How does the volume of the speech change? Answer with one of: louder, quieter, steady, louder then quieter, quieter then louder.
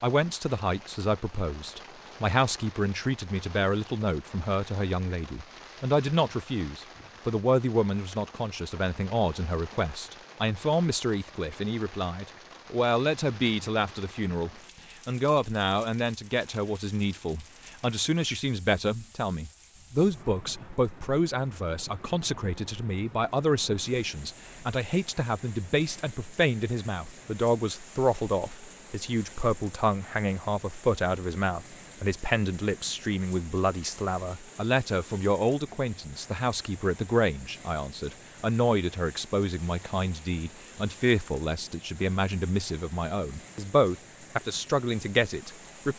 steady.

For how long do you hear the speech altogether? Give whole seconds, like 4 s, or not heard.
46 s.